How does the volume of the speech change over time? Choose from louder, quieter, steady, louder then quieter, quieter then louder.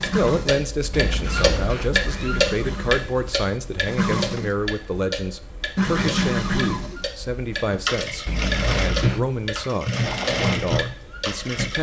steady.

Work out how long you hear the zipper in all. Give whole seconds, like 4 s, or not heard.
2 s.